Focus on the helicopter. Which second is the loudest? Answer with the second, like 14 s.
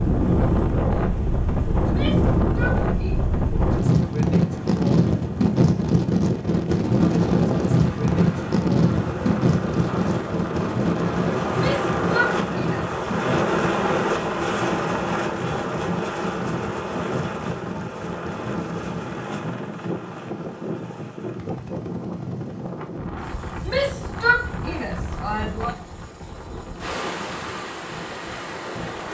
14 s.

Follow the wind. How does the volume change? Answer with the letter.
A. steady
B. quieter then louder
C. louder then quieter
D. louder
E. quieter
E.